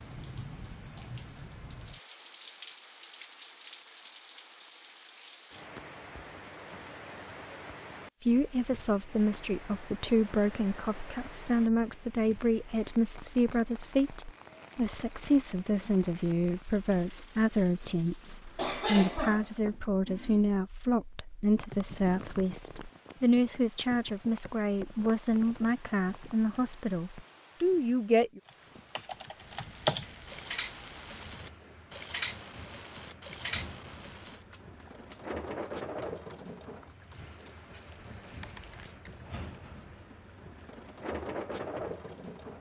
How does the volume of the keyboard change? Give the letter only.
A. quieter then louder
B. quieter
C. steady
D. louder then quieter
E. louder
B.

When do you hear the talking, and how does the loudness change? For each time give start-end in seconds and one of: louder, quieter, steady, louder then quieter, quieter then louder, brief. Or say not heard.
8.2-28.4 steady.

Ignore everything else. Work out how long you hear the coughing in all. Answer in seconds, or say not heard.
2 s.